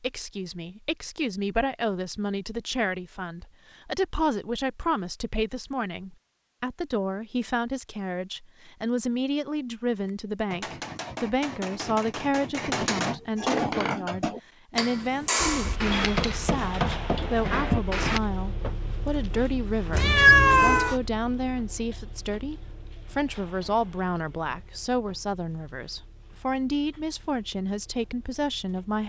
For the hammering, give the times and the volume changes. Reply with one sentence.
You can hear the hammering from 9.9 to 18.2 s, getting louder.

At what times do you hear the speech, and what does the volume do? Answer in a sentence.
You can hear the speech from 0.0 to 29.0 s, at a steady volume.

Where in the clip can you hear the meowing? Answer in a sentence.
The meowing can be heard from 19.9 to 20.9 s.